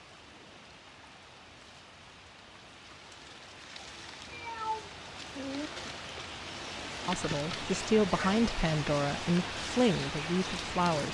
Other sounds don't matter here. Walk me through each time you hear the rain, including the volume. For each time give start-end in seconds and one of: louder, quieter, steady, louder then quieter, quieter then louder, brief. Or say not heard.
0.0-11.0 louder.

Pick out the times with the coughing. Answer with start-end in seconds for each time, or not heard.
not heard.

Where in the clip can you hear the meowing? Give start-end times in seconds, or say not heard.
4.0-5.7.